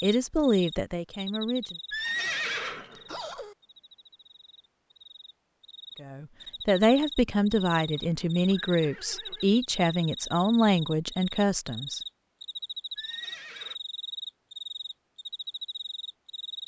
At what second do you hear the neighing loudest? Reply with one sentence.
The loudest moment of the neighing is at 2 seconds.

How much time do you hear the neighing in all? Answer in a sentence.
You can hear the neighing for 4 seconds altogether.